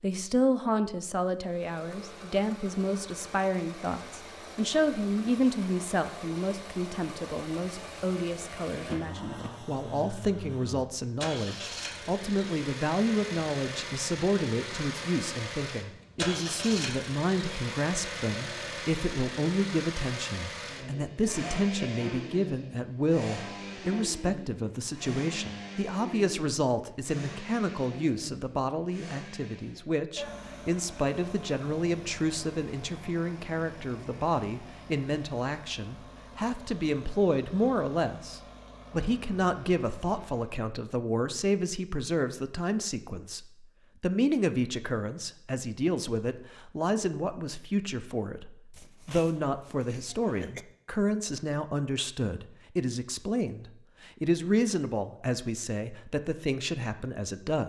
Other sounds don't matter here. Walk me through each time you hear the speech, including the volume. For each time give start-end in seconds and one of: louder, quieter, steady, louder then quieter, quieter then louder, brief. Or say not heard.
0.0-57.6 steady.